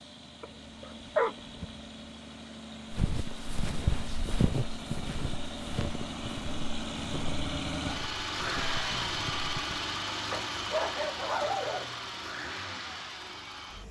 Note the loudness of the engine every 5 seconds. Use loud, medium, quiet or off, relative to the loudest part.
medium, loud, loud.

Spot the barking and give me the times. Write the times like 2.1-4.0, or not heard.
0.4-1.8, 10.3-11.9.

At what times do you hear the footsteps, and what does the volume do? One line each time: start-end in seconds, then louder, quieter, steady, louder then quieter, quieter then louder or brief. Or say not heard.
2.9-9.7 quieter.